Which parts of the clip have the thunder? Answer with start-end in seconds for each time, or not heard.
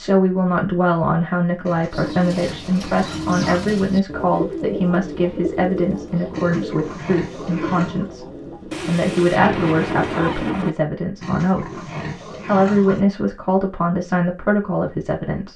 8.7-10.7.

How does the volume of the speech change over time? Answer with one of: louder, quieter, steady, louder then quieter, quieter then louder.
steady.